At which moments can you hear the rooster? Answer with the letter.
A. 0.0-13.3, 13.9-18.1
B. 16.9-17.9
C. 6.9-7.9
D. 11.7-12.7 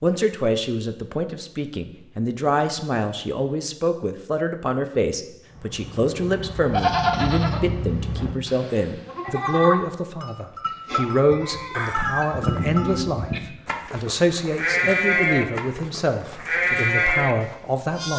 D.